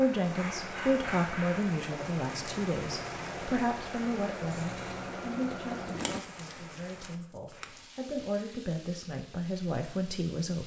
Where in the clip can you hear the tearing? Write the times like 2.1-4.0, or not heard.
6.0-7.8.